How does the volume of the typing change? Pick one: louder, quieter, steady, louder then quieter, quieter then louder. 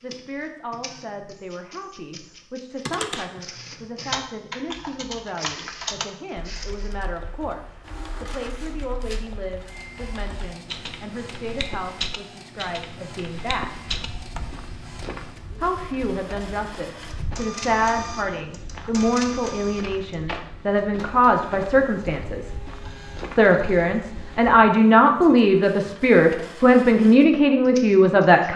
quieter then louder.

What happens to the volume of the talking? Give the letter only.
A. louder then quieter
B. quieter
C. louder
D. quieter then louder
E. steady
C.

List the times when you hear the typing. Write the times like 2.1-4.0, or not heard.
2.9-14.6.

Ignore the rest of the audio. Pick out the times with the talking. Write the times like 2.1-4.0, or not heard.
0.0-13.8, 15.6-22.6, 23.3-28.5.